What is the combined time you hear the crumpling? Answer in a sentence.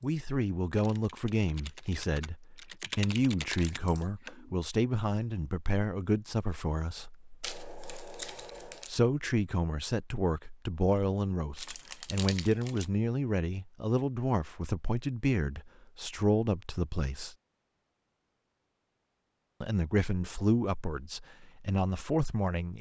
The crumpling can be heard for 3 seconds in total.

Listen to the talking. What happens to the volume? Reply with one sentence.
The volume of the talking stays about the same.